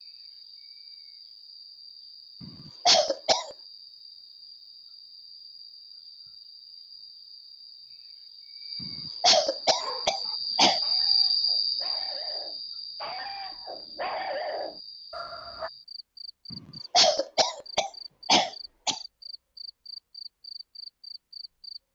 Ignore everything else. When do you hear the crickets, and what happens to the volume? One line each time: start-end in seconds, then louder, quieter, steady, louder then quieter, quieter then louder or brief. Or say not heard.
0.0-21.8 louder then quieter.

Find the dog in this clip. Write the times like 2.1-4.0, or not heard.
9.6-15.7.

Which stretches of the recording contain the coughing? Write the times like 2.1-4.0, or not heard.
2.4-3.5, 8.8-10.8, 16.5-19.0.